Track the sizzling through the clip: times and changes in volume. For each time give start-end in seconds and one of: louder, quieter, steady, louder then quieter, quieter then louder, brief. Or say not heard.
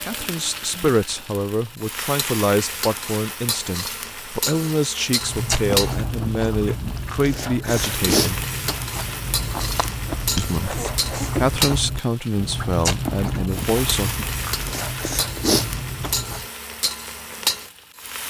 0.0-18.2 steady.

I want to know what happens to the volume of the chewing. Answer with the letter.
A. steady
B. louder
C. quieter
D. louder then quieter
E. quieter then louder
A.